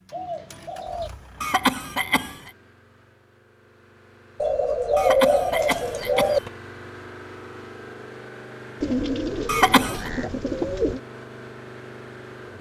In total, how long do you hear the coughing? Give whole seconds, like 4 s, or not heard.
3 s.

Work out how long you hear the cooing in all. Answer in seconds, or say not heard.
5 s.